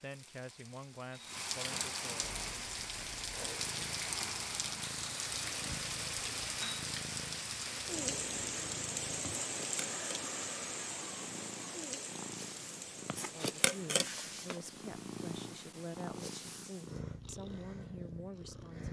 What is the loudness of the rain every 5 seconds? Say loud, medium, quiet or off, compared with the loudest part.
loud, loud, medium, off.